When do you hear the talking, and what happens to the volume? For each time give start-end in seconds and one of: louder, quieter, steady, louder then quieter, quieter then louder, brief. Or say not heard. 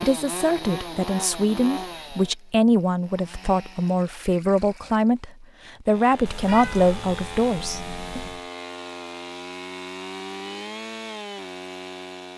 0.0-8.2 steady.